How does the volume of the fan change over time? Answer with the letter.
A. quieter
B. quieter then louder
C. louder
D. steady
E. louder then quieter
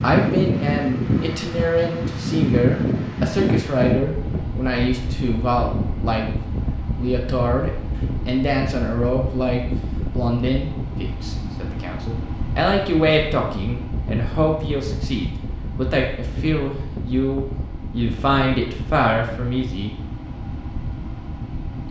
A.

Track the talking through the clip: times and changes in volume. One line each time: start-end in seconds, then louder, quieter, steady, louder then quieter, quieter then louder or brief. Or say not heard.
0.0-19.9 steady.